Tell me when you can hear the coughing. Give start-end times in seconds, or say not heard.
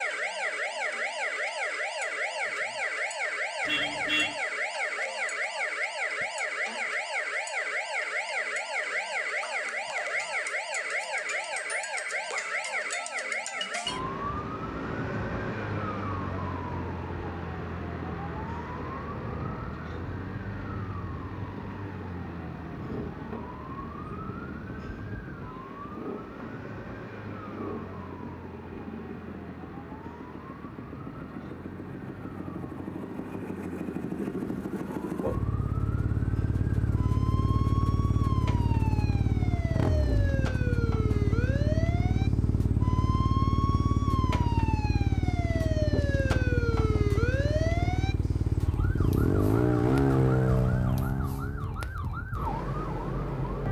not heard.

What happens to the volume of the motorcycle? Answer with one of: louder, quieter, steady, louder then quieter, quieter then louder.
louder.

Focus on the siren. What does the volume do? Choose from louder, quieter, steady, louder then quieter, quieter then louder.
quieter then louder.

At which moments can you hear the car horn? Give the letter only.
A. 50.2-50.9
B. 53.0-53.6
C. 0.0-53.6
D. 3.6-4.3
D.